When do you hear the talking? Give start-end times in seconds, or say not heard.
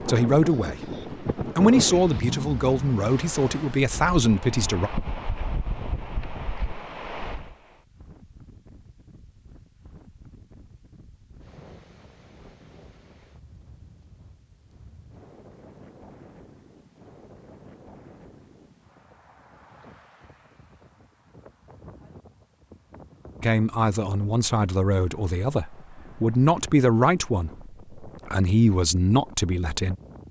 0.0-4.9, 23.4-29.9.